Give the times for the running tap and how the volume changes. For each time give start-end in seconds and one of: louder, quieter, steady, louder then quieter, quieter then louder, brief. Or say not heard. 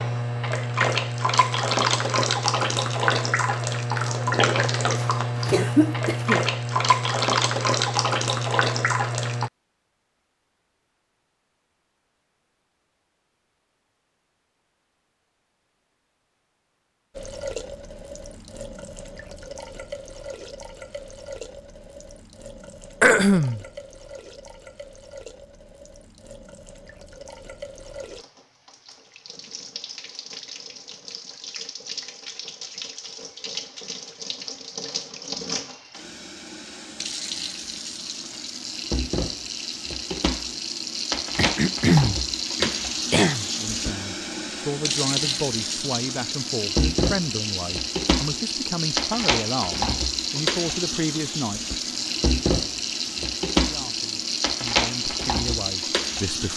0.0-9.5 steady
17.1-56.5 louder.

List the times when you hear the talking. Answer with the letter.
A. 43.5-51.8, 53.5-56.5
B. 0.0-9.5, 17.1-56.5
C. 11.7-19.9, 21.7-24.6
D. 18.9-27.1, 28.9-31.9
A.